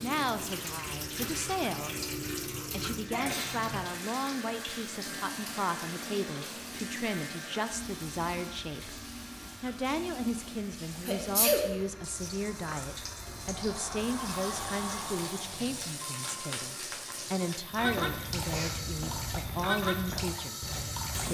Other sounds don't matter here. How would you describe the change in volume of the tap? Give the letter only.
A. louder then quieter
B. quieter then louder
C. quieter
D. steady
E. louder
B.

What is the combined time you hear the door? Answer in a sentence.
The door can be heard for 3 seconds in total.